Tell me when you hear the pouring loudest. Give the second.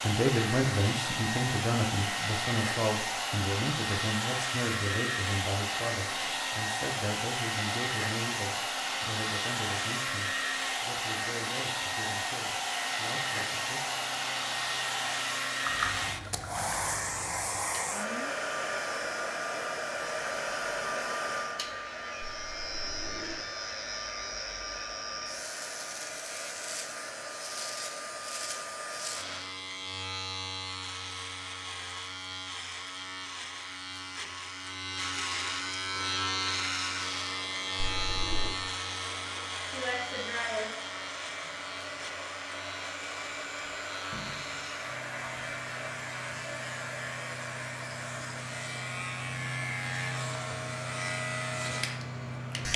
16 s.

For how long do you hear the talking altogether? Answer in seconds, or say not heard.
14 s.